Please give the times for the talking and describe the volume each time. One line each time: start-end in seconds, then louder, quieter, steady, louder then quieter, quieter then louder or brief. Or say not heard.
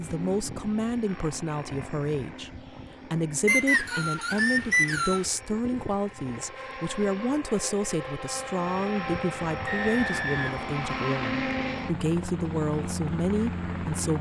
0.0-14.1 steady.